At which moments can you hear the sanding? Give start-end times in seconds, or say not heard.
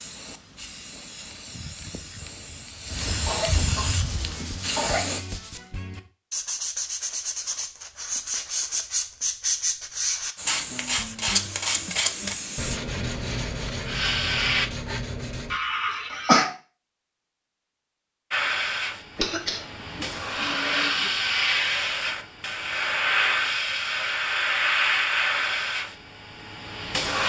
3.9-15.6.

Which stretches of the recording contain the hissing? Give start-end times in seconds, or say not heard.
0.0-5.2, 10.3-14.7, 18.3-27.2.